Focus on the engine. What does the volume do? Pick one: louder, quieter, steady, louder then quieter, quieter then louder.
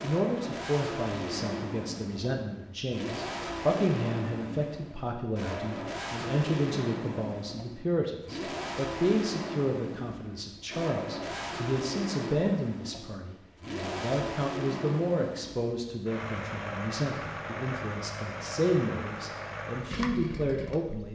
steady.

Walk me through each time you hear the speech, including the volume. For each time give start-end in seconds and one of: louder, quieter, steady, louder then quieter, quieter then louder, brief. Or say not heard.
0.0-21.1 steady.